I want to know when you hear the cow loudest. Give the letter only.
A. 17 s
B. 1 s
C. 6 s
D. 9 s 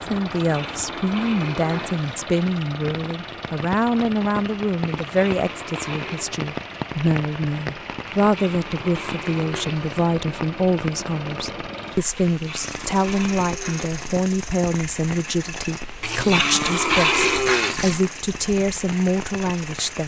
A.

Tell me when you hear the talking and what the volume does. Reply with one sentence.
The talking can be heard from 0.0 to 20.0 s, at a steady volume.